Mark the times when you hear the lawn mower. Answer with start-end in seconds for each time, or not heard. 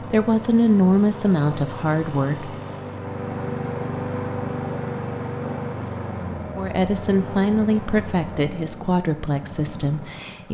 0.0-10.4.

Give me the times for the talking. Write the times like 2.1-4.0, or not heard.
0.1-2.5, 6.5-10.4.